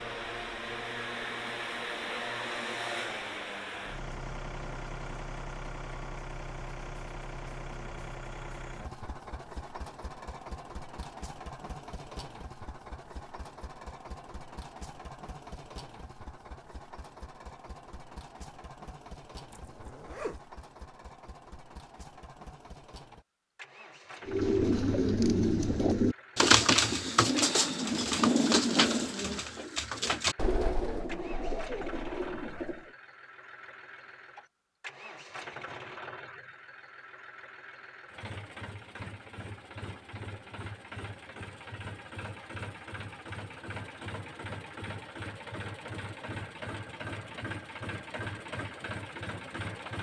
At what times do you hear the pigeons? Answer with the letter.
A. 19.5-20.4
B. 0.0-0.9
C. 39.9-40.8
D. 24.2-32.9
D.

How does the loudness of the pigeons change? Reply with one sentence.
The loudness of the pigeons goes down.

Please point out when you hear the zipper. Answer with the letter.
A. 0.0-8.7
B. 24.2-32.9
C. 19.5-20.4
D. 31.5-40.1
C.